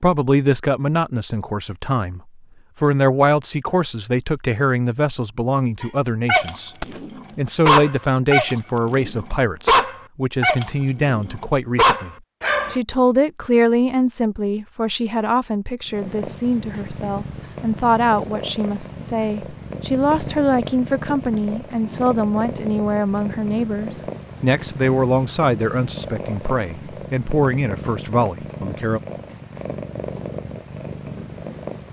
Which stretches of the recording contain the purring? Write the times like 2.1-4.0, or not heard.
15.8-31.8.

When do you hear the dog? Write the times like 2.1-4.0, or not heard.
5.8-12.8.